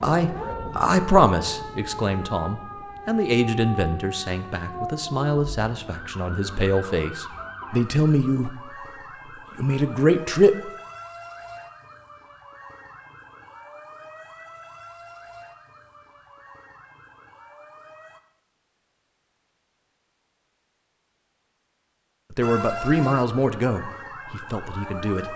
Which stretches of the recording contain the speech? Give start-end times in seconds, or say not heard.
0.0-8.6, 9.6-10.7, 22.3-25.3.